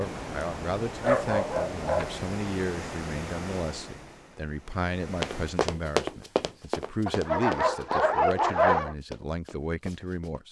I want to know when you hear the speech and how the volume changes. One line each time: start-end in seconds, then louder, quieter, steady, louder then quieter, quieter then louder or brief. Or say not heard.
0.0-10.4 steady.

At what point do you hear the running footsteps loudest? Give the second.
6 s.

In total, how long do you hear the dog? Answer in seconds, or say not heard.
3 s.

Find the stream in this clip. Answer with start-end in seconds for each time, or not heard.
0.0-5.6.